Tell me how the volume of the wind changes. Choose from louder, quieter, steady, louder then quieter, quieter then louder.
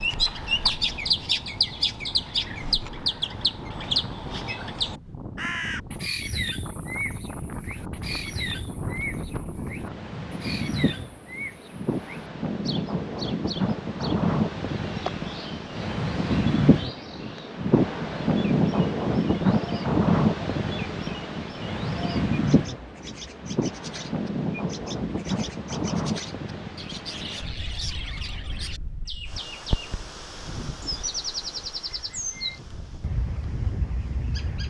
louder then quieter.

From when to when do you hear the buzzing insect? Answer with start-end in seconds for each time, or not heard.
not heard.